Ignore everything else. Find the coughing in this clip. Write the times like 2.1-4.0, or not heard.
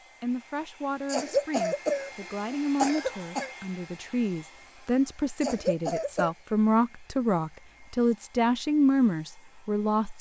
1.1-3.5, 5.4-6.3.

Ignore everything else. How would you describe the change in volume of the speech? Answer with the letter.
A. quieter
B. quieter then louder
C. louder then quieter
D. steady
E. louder
E.